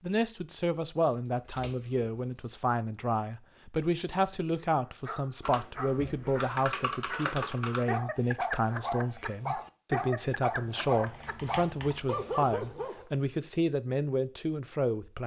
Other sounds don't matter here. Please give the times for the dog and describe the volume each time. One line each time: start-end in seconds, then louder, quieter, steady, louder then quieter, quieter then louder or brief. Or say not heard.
4.8-13.1 louder.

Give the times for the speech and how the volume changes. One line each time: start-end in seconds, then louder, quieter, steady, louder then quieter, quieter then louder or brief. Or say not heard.
0.0-15.2 steady.